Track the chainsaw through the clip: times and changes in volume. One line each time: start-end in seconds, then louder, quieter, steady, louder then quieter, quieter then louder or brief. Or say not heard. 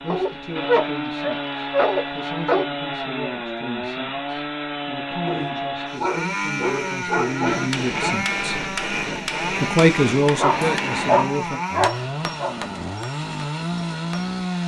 0.0-14.6 steady.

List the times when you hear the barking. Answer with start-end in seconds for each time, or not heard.
0.1-2.6, 5.2-8.2, 10.4-12.6.